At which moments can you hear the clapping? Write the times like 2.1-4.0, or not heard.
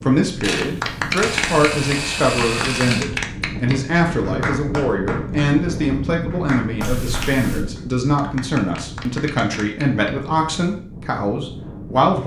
0.4-10.6.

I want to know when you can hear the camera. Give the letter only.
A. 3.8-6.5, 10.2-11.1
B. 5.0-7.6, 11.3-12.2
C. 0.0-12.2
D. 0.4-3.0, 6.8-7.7
D.